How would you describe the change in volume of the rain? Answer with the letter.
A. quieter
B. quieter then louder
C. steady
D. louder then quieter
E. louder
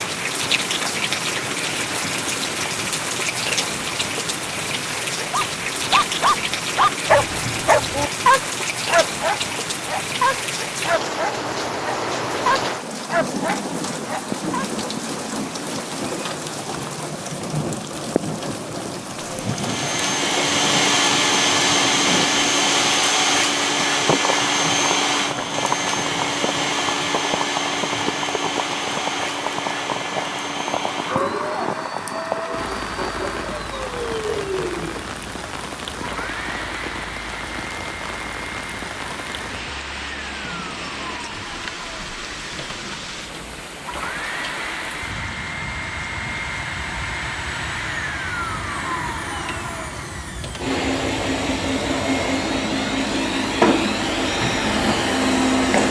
A.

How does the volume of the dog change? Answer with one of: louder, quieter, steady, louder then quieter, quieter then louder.
quieter.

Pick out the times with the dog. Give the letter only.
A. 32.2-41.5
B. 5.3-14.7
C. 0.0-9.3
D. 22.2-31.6
B.